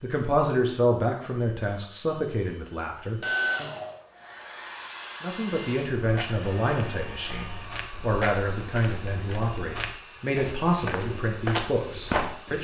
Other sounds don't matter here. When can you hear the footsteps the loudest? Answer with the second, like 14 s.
12 s.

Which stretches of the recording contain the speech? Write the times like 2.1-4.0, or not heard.
0.0-3.7, 5.2-12.6.